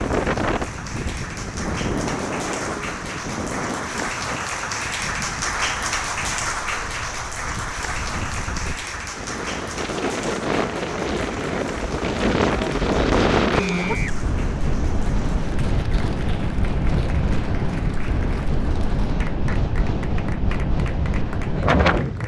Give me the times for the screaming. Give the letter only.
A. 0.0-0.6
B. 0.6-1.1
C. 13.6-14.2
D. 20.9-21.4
C.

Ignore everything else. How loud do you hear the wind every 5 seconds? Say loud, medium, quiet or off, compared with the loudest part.
medium, quiet, loud, loud, loud.